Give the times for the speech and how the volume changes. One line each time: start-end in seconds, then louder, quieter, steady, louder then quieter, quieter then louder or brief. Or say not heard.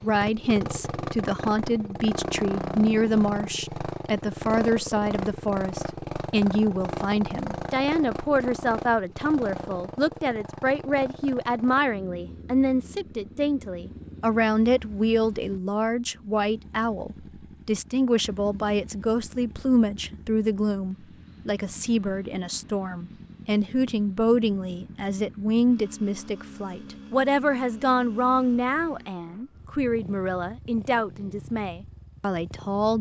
0.0-32.9 steady.